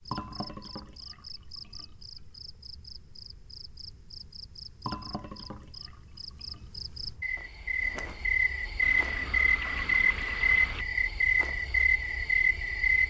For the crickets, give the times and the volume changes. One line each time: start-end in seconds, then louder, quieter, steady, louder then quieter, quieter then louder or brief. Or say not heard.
0.0-13.0 louder.